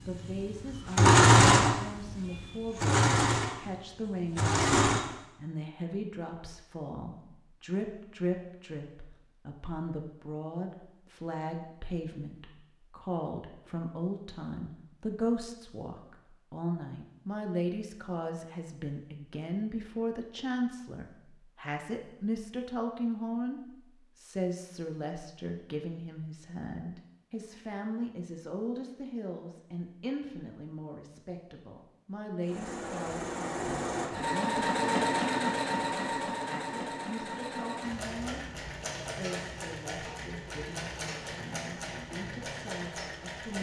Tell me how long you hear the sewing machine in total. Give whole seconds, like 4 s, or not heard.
16 s.